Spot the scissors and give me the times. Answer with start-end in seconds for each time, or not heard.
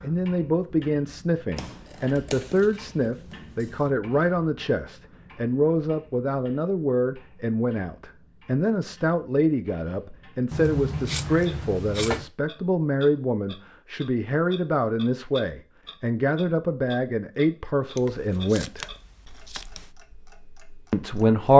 1.6-3.9, 10.5-12.3, 17.9-19.9.